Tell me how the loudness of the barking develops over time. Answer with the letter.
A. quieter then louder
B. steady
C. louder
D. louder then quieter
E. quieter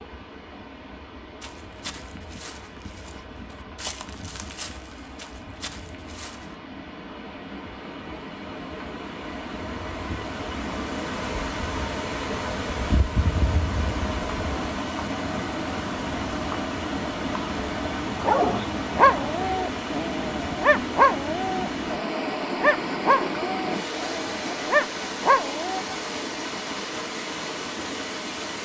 A.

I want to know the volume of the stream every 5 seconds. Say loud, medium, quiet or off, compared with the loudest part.
quiet, medium, loud, loud, loud, loud.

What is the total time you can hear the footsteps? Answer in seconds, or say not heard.
5 s.